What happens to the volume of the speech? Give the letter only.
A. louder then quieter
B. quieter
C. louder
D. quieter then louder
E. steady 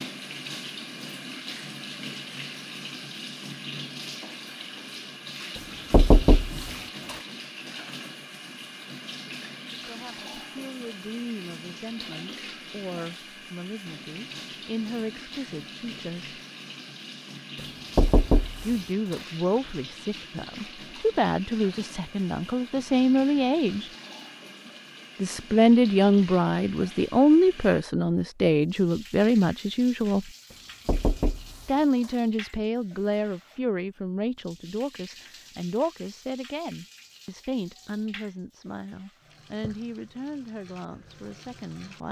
A.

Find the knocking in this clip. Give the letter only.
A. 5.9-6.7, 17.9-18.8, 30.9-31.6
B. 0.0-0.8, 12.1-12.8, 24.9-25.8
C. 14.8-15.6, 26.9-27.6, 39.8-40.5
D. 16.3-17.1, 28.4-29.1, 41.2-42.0
A.